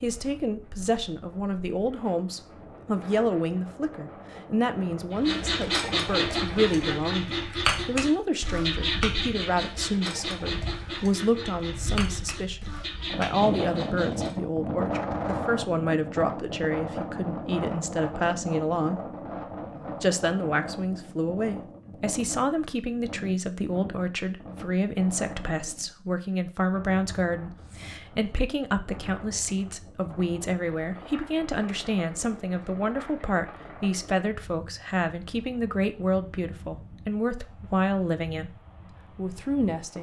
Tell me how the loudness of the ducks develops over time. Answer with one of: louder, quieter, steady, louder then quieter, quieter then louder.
quieter.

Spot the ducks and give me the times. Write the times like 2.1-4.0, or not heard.
5.2-14.3.